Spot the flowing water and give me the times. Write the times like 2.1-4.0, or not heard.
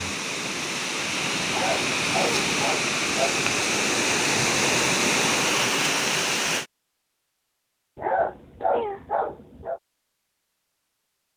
0.0-6.7.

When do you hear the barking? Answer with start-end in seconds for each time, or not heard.
1.4-3.4, 8.0-9.8.